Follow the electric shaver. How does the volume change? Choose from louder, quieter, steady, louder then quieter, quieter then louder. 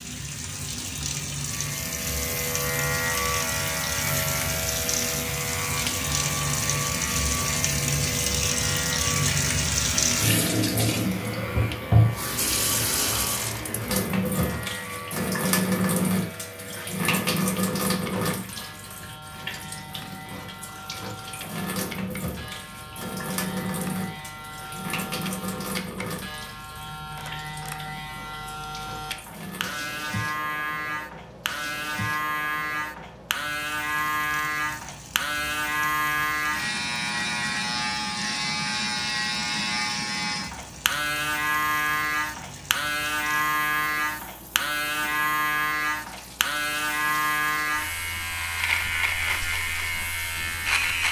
quieter then louder.